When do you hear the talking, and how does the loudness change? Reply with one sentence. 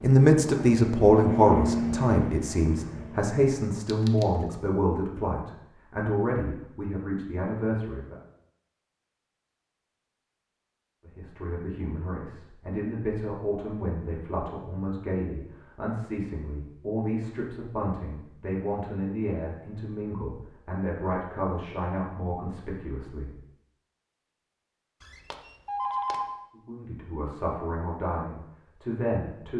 The talking can be heard from 0.0 to 8.2 s, getting quieter; from 11.1 to 23.4 s, at a steady volume; and briefly from 26.6 to 29.5 s.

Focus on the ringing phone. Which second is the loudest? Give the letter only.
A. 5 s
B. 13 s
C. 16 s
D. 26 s
D.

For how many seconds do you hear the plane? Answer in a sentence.
You can hear the plane for 3 seconds altogether.